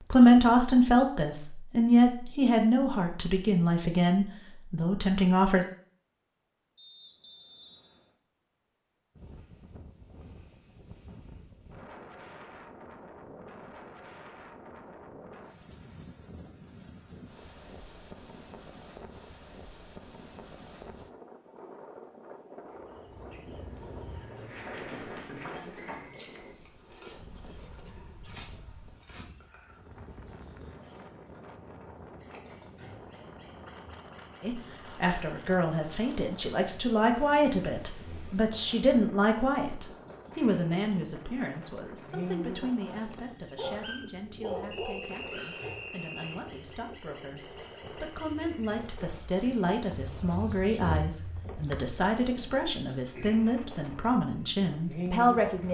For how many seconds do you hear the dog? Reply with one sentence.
The dog can be heard for 3 seconds in total.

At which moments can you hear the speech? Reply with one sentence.
You can hear the speech from 0.1 to 5.7 s and from 34.4 to 55.6 s.